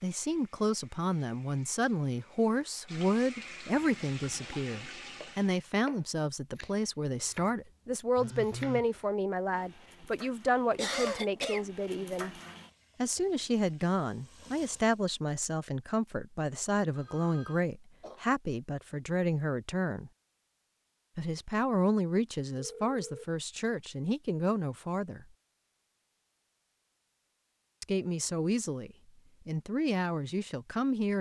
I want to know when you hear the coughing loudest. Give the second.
11 s.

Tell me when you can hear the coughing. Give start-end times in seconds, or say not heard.
10.7-11.7, 17.6-18.2.